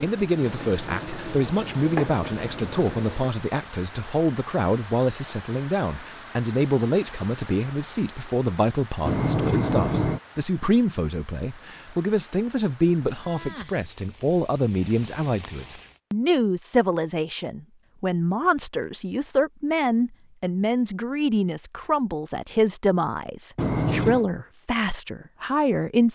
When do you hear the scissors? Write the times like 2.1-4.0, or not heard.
0.3-2.9, 9.1-10.2, 23.6-24.2.